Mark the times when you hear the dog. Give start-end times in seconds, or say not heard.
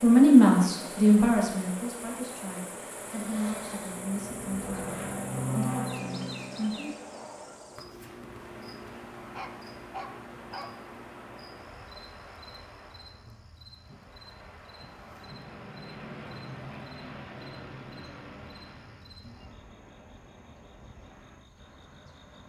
9.3-10.8.